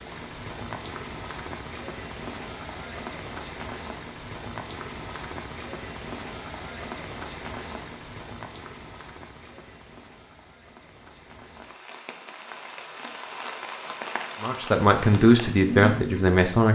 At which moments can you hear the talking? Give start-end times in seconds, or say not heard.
14.4-16.7.